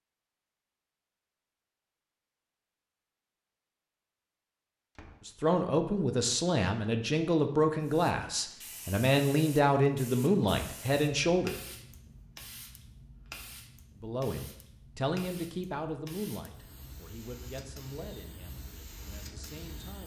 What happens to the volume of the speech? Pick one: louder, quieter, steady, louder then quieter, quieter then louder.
quieter.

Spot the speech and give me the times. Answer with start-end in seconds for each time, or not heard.
5.2-11.6, 14.0-20.0.